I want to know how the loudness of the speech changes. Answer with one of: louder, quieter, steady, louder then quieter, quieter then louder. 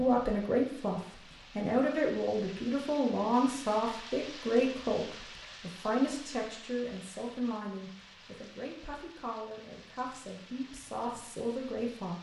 quieter.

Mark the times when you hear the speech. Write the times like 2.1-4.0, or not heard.
0.0-12.1.